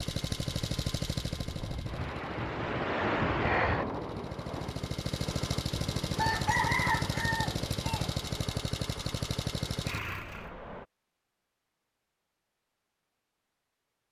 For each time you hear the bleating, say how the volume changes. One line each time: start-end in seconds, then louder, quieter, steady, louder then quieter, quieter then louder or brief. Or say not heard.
not heard.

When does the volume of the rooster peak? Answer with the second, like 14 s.
7 s.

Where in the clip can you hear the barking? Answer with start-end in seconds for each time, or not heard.
not heard.